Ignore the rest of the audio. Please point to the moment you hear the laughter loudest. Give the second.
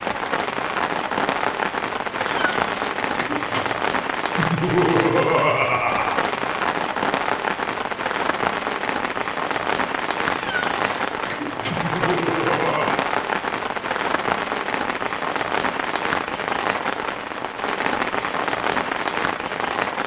5 s.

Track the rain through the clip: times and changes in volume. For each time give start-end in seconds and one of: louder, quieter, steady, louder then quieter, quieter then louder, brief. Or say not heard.
0.0-20.0 steady.